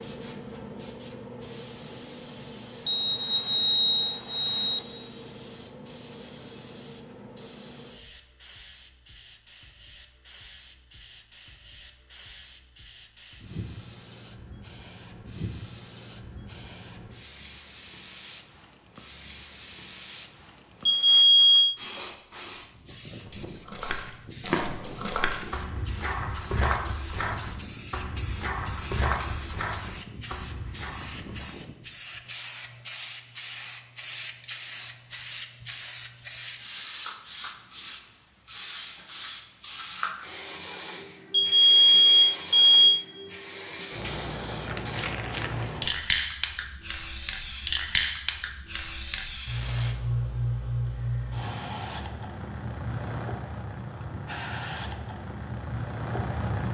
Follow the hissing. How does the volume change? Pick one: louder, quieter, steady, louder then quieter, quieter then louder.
louder.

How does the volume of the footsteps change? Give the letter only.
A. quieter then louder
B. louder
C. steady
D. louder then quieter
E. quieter
E.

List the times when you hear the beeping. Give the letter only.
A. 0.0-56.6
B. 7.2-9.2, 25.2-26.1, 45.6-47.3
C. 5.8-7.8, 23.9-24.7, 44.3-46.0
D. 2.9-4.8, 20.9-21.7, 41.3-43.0
D.